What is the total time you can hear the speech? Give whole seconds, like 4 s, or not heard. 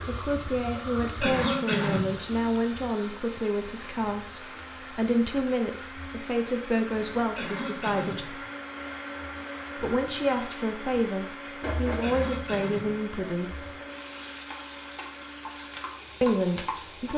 13 s.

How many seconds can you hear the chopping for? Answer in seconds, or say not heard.
not heard.